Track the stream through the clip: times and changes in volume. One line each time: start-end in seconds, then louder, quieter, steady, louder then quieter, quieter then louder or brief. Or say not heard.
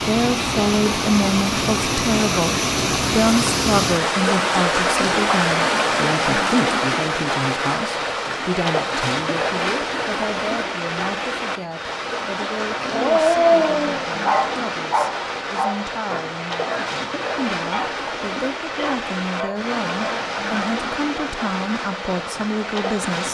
0.0-23.2 quieter.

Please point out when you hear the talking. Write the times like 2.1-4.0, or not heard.
0.1-23.2.